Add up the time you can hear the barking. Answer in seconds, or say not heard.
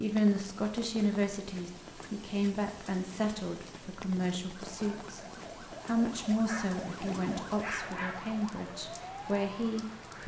2 s.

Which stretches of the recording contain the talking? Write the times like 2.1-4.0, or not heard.
0.0-5.2, 5.8-10.2.